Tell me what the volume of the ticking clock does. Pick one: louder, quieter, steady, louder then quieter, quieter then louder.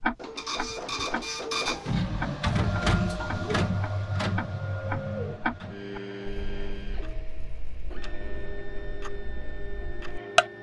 quieter then louder.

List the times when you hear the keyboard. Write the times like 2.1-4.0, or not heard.
not heard.